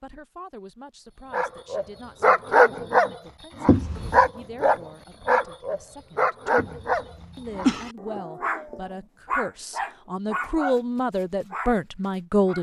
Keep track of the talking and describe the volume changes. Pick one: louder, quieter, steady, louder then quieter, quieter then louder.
louder.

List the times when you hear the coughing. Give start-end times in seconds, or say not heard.
3.6-4.2, 6.5-8.0.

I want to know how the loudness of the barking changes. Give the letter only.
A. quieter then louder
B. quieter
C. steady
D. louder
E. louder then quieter
B.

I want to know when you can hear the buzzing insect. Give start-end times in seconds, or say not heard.
not heard.